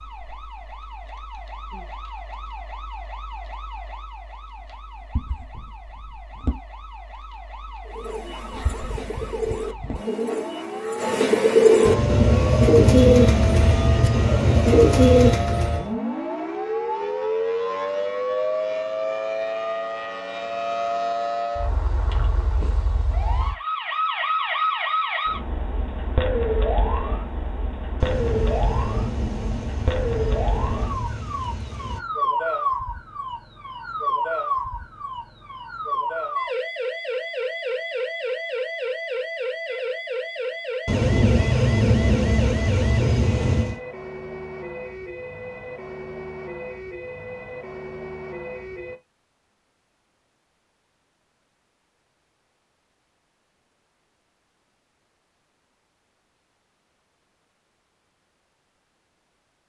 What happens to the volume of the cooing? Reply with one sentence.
The volume of the cooing goes up.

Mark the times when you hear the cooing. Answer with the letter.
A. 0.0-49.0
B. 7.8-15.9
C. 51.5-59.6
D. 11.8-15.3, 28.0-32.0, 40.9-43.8
B.